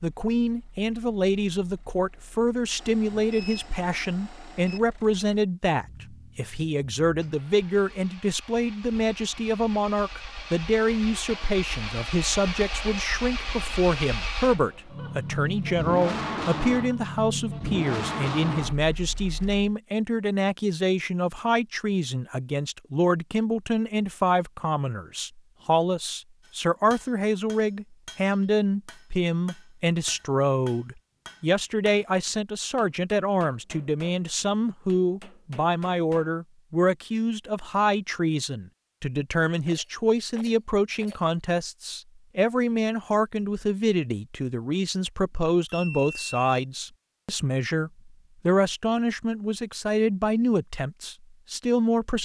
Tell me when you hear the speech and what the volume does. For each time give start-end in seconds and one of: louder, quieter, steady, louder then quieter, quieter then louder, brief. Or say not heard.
0.0-52.2 steady.